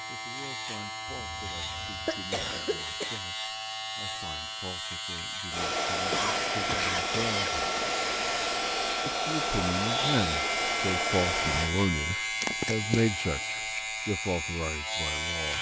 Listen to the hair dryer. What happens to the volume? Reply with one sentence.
The volume of the hair dryer stays about the same.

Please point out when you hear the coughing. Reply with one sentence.
The coughing can be heard from 1.1 to 3.2 s, from 6.1 to 8.0 s and from 12.4 to 13.1 s.